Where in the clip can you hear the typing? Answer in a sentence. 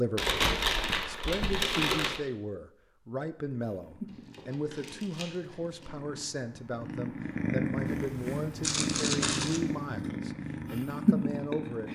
The typing can't be heard in this clip.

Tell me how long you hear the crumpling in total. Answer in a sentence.
The crumpling can be heard for 5 seconds in total.